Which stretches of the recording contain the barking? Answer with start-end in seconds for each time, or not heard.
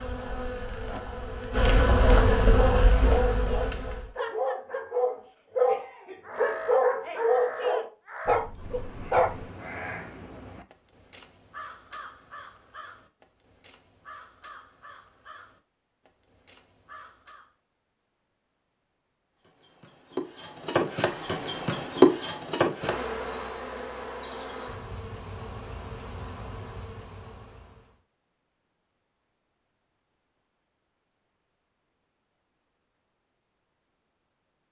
2.2-9.4.